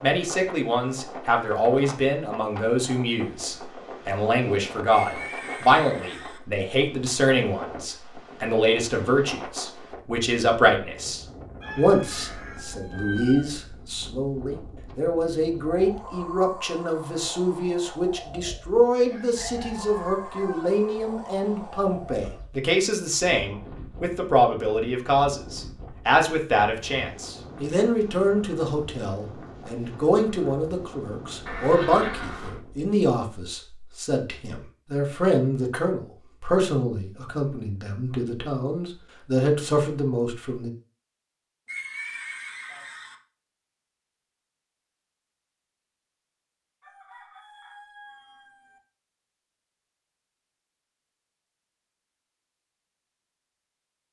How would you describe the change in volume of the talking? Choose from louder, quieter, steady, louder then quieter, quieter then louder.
steady.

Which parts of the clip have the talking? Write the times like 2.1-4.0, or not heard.
0.0-40.7.